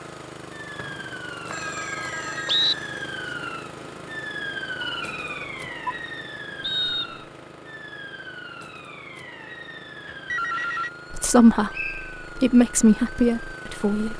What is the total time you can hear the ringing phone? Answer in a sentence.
The ringing phone can be heard for 3 seconds in total.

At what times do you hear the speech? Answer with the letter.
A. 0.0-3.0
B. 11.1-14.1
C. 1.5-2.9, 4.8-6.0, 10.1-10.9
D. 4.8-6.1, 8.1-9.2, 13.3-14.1
B.